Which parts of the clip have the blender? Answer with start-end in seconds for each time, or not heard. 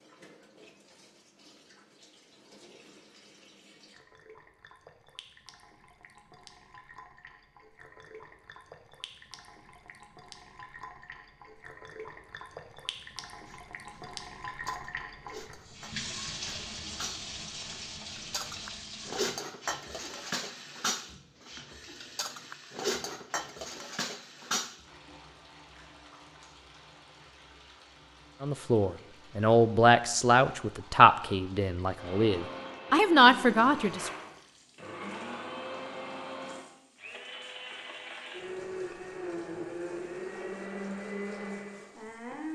31.9-42.5.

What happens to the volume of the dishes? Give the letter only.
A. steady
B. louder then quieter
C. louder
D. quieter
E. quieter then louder
C.